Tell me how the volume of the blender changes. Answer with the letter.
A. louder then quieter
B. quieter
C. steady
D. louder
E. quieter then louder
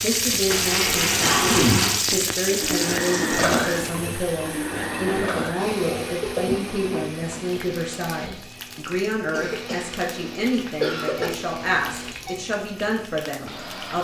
B.